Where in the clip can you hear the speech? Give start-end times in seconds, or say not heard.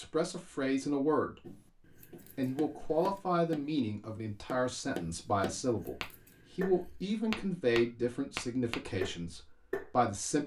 0.0-1.5, 2.4-10.4.